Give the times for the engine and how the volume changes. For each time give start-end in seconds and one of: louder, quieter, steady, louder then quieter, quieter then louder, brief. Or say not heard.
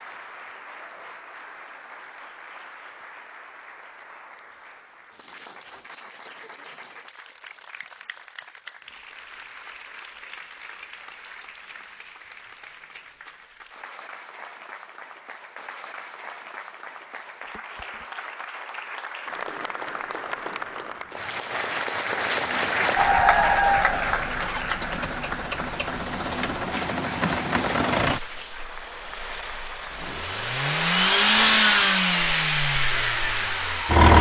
22.4-34.1 louder.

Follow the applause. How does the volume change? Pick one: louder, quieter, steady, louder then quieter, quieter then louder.
louder then quieter.